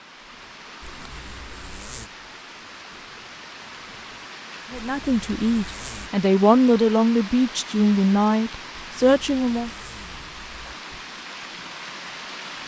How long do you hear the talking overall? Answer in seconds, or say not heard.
5 s.